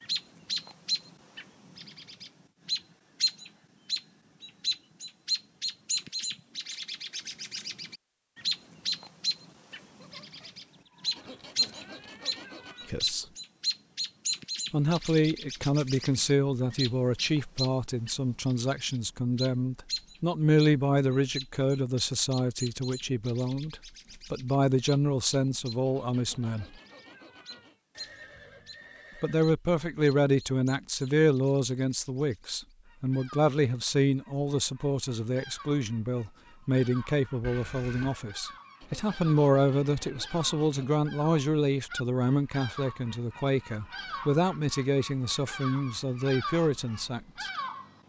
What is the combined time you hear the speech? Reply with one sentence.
You can hear the speech for 31 seconds altogether.